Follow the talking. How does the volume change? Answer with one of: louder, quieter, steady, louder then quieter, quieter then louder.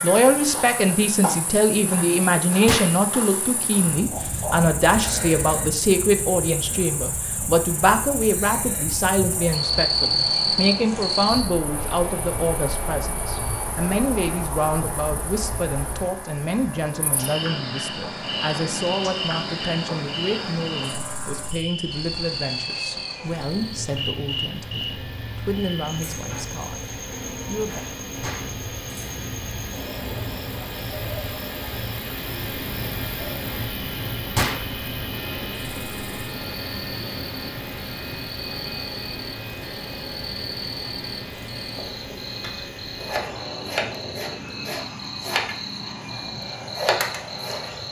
quieter.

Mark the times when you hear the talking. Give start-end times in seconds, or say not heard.
0.0-27.8.